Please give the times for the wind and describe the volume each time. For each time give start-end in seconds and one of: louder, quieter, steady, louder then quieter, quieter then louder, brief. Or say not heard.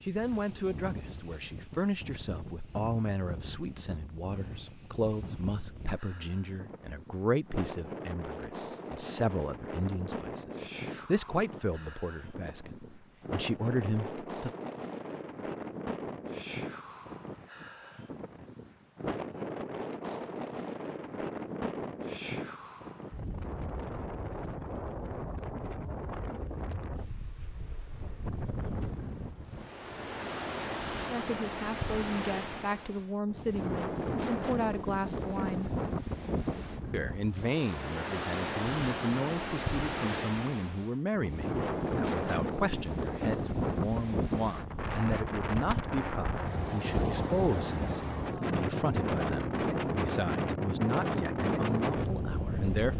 0.0-52.9 louder.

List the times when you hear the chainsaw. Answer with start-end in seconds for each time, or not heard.
not heard.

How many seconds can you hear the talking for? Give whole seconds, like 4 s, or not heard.
35 s.